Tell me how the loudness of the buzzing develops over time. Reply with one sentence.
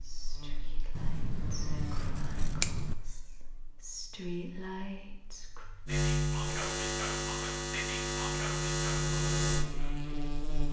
The volume of the buzzing goes down, then up.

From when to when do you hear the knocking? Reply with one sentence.
You can't hear the knocking here.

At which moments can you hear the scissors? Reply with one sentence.
You can hear the scissors from 0.9 to 3.0 s.